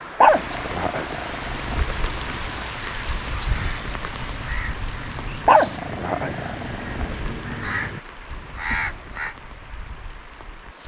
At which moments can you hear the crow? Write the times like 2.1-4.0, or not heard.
2.6-9.3.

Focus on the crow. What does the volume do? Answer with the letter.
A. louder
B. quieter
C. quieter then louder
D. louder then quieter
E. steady
A.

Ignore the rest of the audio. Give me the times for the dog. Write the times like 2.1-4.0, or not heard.
0.2-2.6, 5.5-7.1.